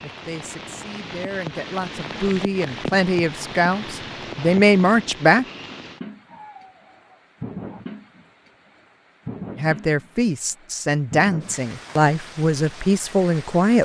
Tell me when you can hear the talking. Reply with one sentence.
You can hear the talking from 0.0 to 5.5 s and from 9.6 to 13.8 s.